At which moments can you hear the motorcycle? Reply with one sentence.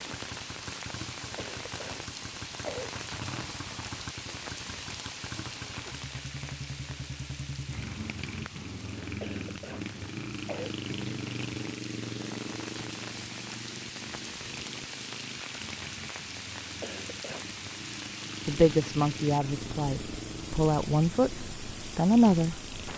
The motorcycle can be heard from 0.0 to 22.9 s.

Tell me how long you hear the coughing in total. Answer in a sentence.
You can hear the coughing for 4 seconds altogether.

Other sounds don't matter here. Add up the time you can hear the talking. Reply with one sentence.
You can hear the talking for 4 seconds altogether.